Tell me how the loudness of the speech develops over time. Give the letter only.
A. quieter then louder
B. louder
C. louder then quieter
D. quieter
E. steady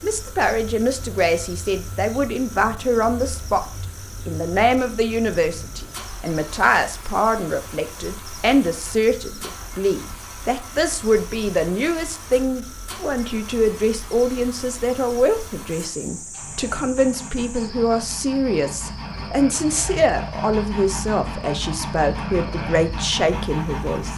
E.